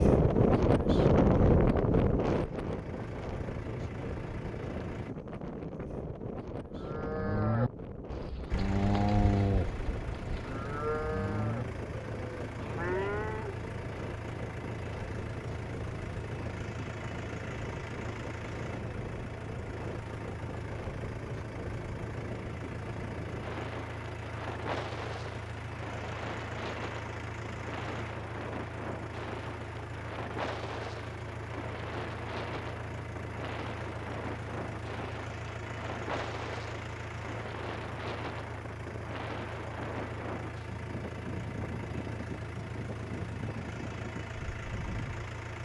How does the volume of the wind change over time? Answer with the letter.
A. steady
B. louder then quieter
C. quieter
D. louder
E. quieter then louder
C.